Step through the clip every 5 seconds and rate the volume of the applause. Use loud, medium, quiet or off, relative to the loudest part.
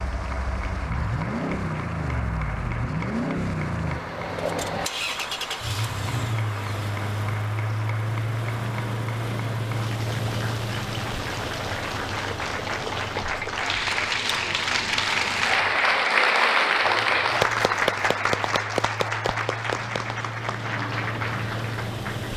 quiet, quiet, medium, loud, medium.